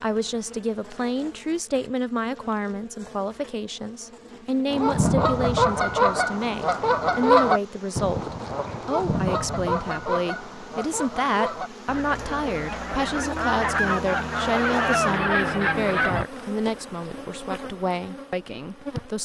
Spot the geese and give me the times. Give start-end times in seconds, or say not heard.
4.7-16.2.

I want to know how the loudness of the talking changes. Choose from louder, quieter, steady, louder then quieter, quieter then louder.
steady.